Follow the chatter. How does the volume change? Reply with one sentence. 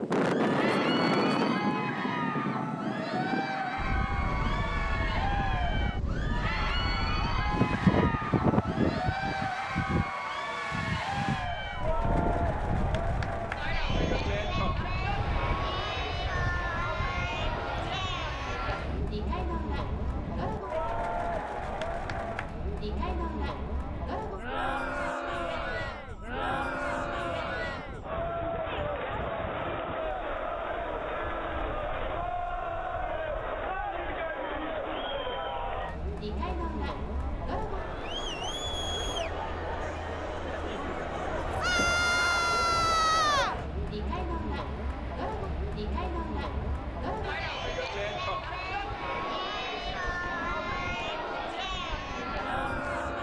The loudness of the chatter stays about the same.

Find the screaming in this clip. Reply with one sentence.
The screaming can be heard from 41.6 to 43.5 s.